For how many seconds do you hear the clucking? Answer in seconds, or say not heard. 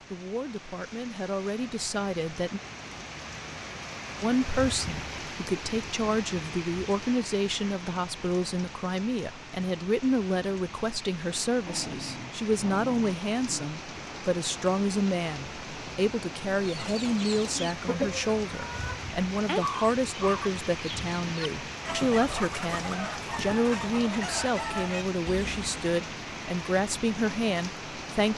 9 s.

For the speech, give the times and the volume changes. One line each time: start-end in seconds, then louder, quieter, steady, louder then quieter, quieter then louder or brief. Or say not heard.
0.1-2.6 brief
4.2-28.3 steady.